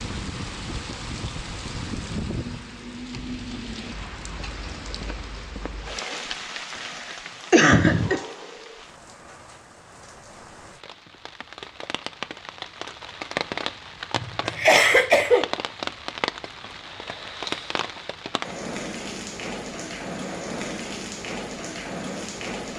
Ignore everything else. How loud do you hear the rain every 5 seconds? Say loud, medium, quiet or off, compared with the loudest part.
loud, medium, loud, loud, loud.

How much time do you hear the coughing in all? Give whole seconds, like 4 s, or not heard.
3 s.